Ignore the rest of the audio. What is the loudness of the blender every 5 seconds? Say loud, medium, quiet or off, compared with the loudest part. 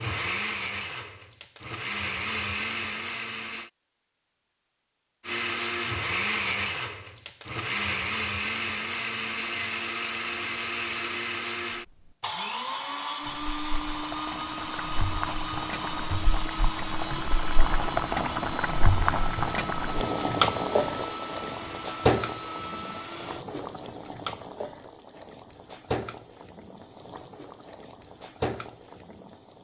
loud, loud, loud, medium, medium, off.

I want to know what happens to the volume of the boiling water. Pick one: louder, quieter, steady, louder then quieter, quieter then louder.
louder then quieter.